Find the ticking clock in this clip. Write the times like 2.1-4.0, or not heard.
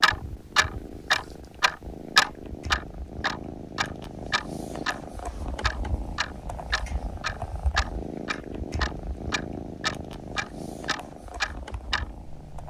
0.0-12.6.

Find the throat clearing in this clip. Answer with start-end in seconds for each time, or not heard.
not heard.